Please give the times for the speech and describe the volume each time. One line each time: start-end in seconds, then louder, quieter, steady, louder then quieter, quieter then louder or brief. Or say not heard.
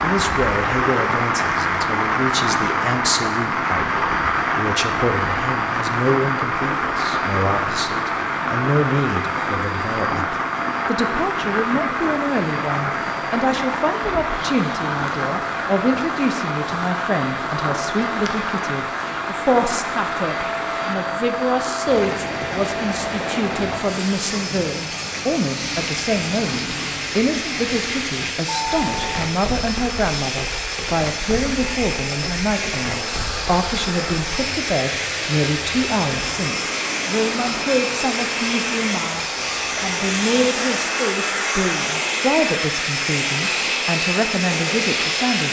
0.0-45.4 steady.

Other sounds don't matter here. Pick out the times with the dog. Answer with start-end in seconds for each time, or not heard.
not heard.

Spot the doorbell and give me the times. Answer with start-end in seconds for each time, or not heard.
28.4-29.2.